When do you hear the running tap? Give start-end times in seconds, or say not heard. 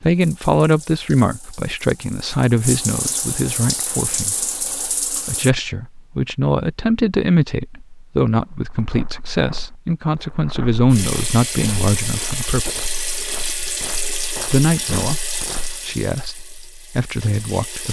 0.0-5.5, 10.9-17.8.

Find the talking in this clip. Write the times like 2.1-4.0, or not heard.
0.0-12.8, 14.5-17.8.